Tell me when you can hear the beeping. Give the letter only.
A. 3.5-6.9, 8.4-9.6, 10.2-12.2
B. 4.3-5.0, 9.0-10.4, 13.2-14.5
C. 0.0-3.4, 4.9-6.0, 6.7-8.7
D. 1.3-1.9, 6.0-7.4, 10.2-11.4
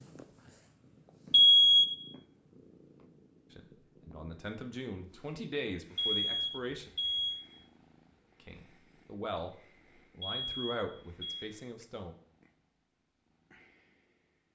D.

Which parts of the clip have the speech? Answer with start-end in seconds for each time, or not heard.
3.5-6.9, 8.4-9.6, 10.2-12.2.